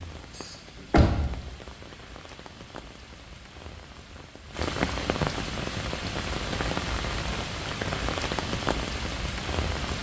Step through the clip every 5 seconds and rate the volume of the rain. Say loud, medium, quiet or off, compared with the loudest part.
medium, loud.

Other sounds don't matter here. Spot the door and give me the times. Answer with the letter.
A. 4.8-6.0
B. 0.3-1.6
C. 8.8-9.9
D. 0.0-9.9
B.